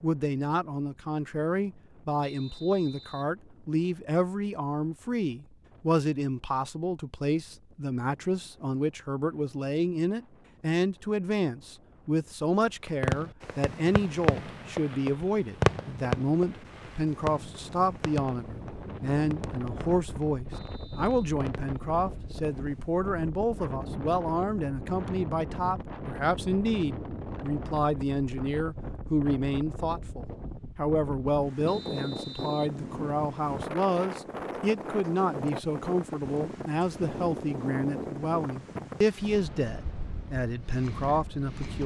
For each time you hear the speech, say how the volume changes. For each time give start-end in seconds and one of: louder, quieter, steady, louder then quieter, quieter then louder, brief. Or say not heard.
0.0-41.8 steady.